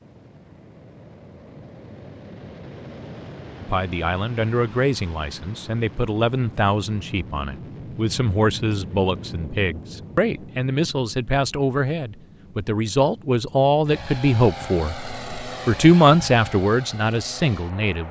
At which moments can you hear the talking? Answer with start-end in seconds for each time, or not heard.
3.6-18.0.